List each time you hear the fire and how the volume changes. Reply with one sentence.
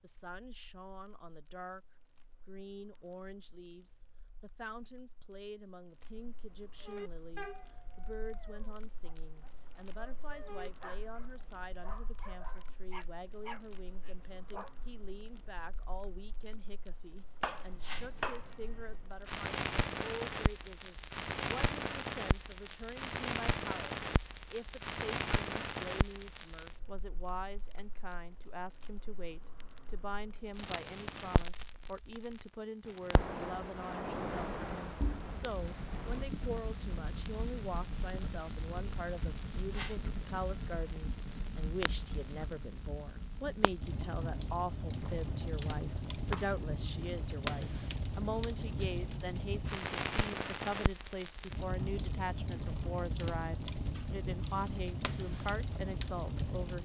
The fire can be heard from 0.0 to 56.8 s, getting louder.